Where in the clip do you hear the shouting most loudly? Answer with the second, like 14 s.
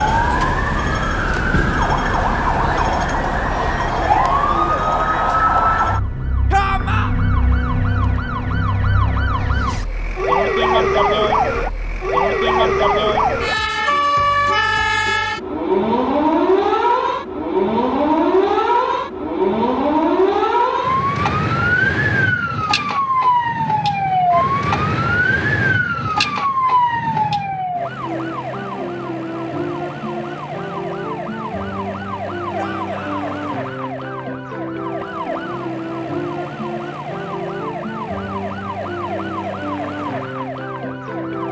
7 s.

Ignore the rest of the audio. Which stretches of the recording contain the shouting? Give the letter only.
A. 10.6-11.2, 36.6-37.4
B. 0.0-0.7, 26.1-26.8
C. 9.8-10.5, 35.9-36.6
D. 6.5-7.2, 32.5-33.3
D.